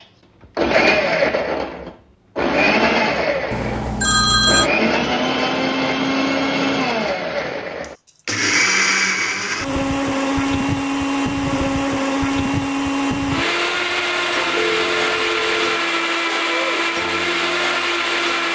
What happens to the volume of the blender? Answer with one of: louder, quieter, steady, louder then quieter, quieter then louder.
steady.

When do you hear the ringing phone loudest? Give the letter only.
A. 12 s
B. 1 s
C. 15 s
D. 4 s
D.